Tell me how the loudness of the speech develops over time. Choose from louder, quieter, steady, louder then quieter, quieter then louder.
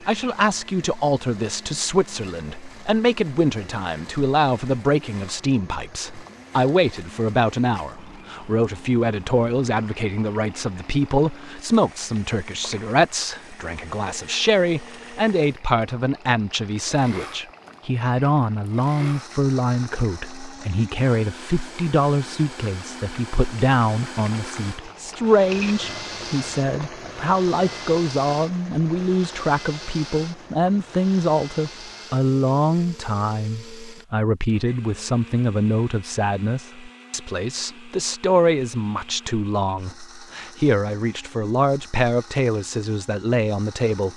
steady.